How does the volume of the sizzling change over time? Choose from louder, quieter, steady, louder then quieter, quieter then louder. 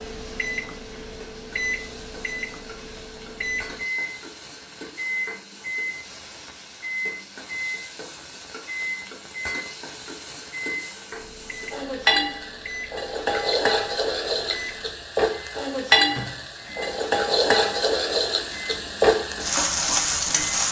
louder.